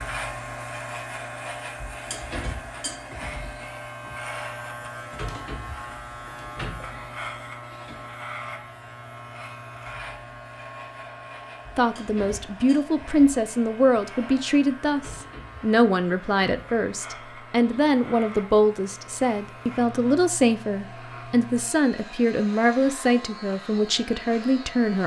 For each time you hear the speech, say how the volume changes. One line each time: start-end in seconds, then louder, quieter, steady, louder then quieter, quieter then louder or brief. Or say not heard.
11.8-25.0 steady.